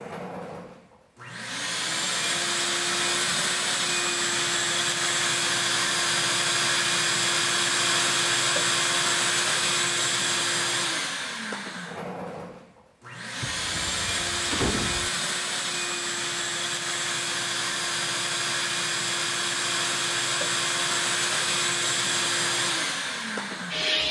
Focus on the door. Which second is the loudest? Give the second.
15 s.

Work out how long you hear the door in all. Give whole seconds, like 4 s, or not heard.
2 s.